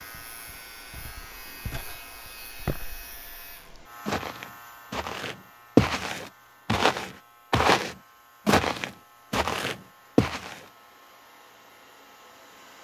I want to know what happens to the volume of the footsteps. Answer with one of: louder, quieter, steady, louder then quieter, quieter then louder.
louder.